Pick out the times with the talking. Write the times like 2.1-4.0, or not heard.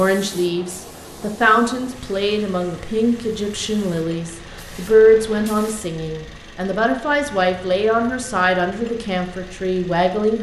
0.0-10.3.